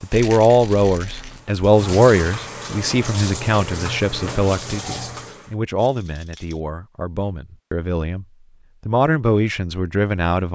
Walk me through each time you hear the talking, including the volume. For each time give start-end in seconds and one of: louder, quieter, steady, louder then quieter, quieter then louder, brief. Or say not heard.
0.0-8.2 quieter
8.8-10.5 brief.